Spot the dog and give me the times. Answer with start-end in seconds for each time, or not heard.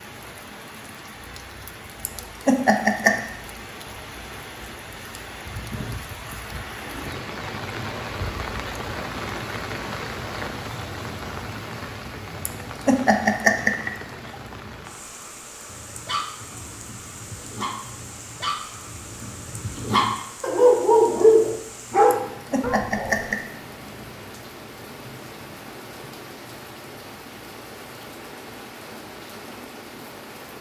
15.7-23.2.